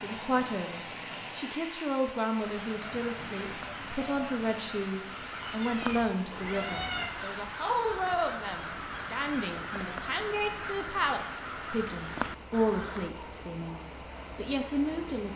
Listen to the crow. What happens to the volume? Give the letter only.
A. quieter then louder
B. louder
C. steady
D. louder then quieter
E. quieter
B.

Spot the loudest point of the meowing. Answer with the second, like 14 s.
7 s.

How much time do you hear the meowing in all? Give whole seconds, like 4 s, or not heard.
2 s.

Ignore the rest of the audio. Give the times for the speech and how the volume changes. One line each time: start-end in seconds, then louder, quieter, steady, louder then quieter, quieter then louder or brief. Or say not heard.
0.0-15.3 steady.